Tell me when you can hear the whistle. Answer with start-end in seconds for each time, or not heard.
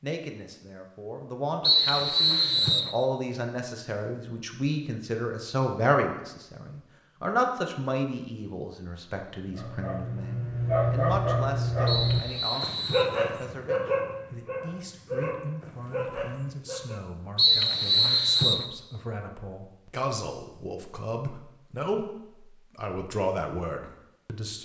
1.6-3.0, 11.8-13.1, 17.4-18.6.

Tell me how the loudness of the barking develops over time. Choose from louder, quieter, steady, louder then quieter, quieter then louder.
quieter.